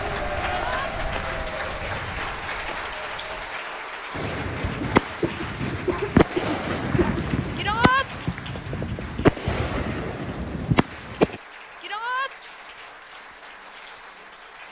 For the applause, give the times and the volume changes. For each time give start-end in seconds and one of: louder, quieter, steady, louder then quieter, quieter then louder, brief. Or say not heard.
0.0-14.6 quieter.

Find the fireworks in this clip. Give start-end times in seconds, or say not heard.
4.2-11.4.